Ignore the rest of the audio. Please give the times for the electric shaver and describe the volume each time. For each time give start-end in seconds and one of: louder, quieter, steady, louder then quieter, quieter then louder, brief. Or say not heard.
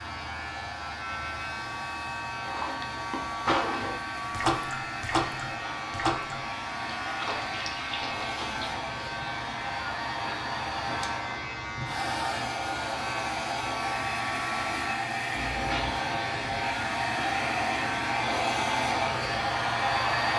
0.0-20.1 steady.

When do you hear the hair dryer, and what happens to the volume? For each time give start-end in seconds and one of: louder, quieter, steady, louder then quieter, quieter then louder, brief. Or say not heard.
0.0-20.3 louder.